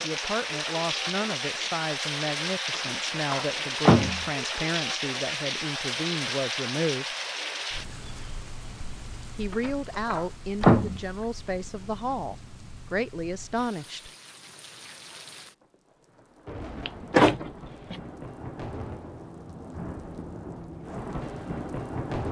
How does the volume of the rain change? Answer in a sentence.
The volume of the rain goes down, then up.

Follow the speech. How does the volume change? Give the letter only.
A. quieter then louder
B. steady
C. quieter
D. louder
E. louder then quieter
B.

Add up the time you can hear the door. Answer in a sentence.
The door can be heard for 4 seconds in total.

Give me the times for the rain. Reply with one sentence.
You can hear the rain from 0.0 to 22.2 s.